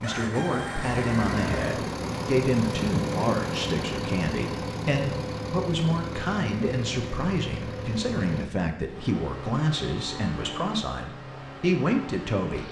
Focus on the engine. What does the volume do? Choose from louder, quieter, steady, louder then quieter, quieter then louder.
quieter.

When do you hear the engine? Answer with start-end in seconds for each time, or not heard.
0.0-12.6.